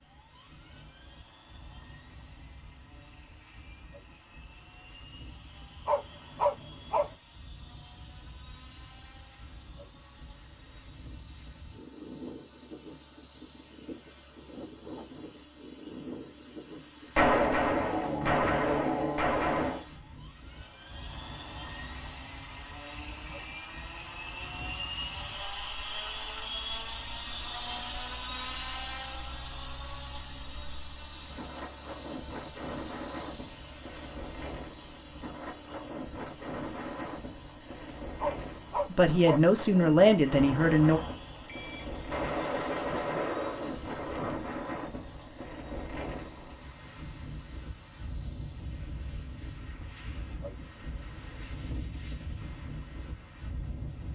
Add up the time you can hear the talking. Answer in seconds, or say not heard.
2 s.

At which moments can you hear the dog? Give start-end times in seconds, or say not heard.
5.8-7.2, 38.2-39.5.